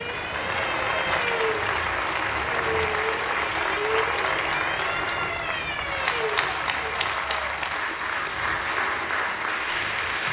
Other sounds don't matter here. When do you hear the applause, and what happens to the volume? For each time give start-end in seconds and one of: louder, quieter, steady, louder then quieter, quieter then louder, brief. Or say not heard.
0.0-10.2 steady.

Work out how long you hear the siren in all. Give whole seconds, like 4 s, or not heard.
7 s.